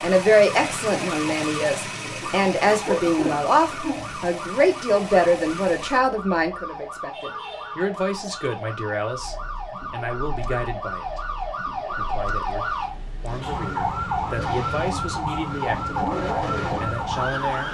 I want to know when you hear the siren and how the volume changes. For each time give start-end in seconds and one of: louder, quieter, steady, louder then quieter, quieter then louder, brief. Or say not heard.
0.0-17.6 louder.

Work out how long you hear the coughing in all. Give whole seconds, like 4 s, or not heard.
2 s.